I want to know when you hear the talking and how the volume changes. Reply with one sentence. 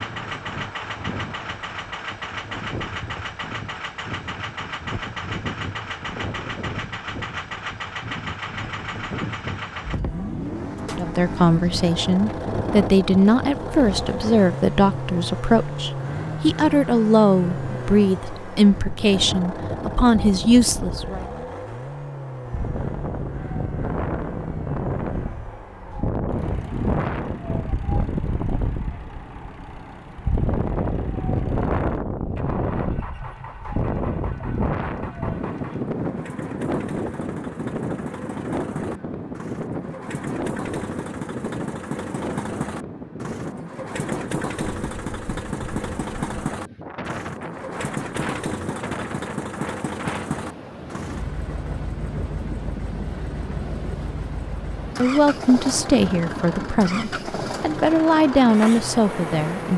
The talking can be heard from 10.9 to 21.2 s, at a steady volume; and from 55.0 to 59.7 s, getting quieter then louder.